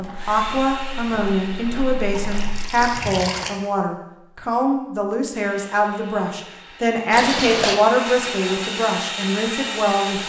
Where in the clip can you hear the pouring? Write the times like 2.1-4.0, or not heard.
2.1-3.5, 7.1-7.8.